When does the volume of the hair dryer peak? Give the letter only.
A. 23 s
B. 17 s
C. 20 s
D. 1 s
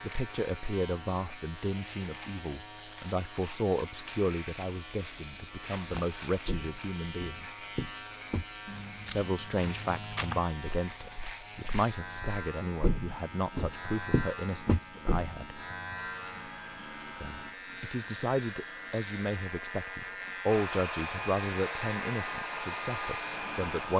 A.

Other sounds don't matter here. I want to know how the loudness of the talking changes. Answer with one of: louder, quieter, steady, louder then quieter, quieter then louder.
steady.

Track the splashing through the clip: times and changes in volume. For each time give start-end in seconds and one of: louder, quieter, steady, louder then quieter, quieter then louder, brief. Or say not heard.
not heard.